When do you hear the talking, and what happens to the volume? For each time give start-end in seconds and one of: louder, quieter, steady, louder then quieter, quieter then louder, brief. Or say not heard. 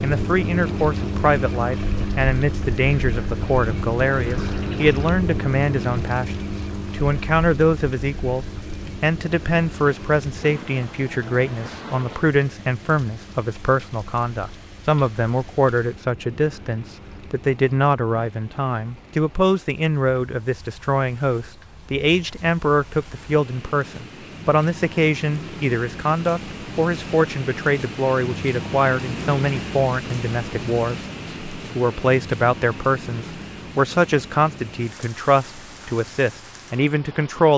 0.0-37.5 steady.